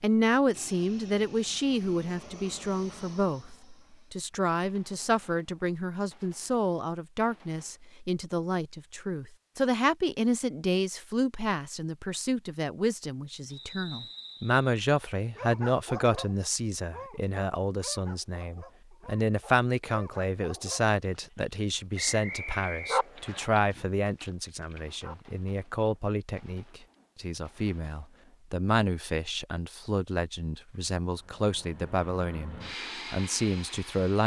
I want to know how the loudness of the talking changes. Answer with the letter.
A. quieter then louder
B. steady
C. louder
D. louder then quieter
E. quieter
B.